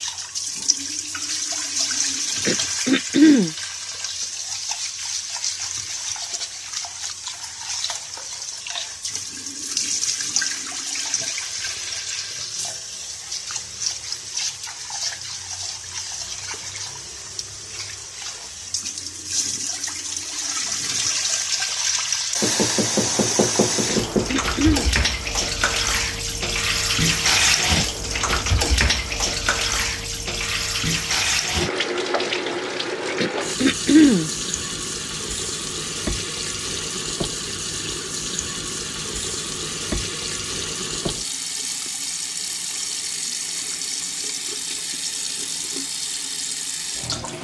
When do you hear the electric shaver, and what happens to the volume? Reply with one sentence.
You can't hear the electric shaver here.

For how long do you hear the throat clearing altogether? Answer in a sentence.
You can hear the throat clearing for 3 seconds altogether.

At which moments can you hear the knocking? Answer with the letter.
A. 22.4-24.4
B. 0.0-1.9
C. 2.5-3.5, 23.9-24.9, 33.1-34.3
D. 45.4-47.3
A.